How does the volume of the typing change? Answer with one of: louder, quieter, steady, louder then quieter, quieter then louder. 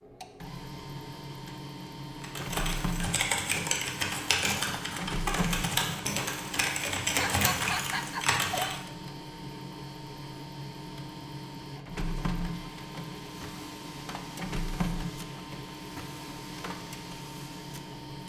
steady.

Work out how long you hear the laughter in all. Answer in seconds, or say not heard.
2 s.